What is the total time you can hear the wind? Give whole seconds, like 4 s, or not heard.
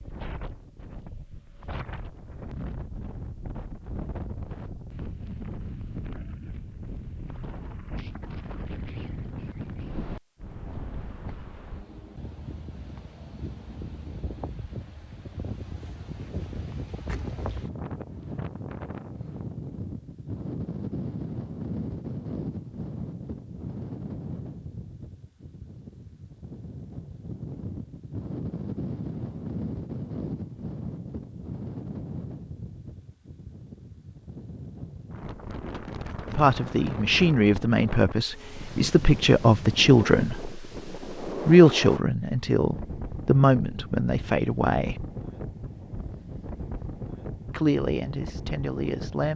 49 s.